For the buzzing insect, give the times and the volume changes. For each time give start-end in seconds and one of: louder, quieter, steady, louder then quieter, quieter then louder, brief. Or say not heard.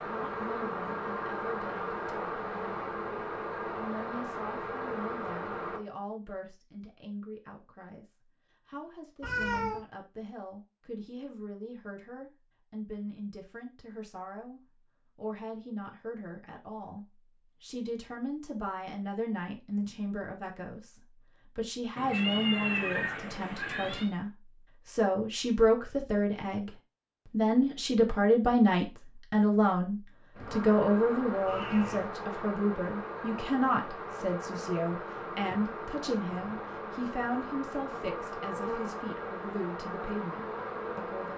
0.0-5.8 steady
30.4-41.3 steady.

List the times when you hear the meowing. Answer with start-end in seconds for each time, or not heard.
9.2-9.8, 21.9-24.1, 31.4-32.1.